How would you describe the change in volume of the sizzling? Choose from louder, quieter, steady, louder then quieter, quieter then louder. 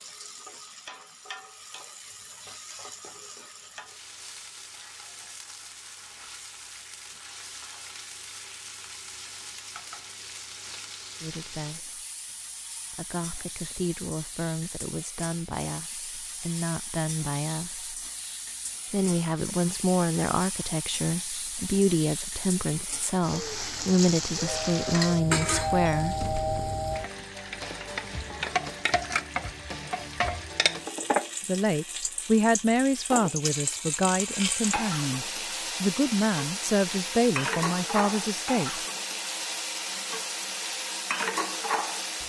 louder.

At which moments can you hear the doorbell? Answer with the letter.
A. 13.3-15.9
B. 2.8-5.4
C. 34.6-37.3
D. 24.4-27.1
D.